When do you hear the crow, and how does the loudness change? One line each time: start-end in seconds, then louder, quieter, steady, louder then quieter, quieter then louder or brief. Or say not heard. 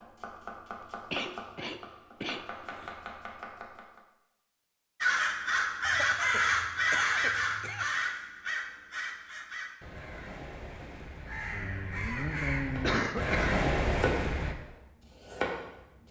5.0-14.6 quieter then louder.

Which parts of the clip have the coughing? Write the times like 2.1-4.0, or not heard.
1.1-3.0, 5.8-7.8, 12.8-13.6.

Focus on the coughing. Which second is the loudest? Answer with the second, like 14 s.
13 s.